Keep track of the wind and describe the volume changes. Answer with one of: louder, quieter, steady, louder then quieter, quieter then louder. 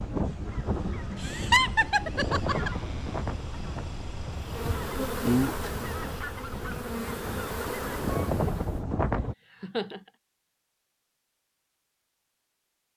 quieter then louder.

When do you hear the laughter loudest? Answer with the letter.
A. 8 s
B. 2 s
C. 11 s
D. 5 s
B.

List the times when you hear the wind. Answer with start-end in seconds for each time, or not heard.
0.0-9.3.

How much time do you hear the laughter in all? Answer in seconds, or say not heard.
2 s.